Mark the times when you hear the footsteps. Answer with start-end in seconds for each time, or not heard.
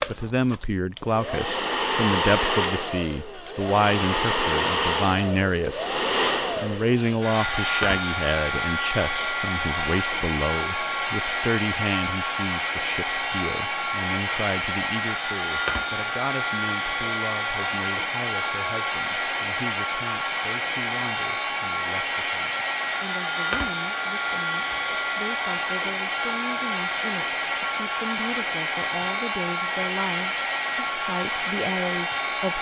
not heard.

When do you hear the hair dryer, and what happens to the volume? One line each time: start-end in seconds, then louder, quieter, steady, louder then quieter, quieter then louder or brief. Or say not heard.
0.0-32.5 steady.